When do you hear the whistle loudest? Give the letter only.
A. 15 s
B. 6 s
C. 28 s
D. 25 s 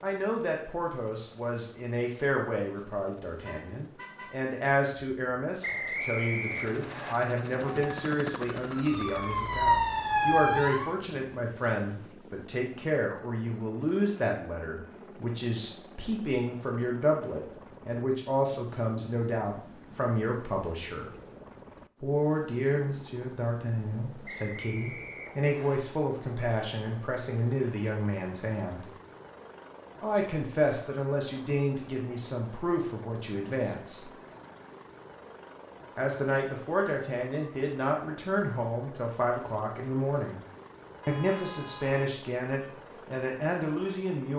B.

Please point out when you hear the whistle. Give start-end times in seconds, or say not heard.
5.6-7.2, 24.2-25.8.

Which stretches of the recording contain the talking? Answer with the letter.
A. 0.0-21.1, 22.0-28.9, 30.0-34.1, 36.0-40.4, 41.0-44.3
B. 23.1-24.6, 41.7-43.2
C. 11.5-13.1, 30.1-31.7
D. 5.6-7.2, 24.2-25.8
A.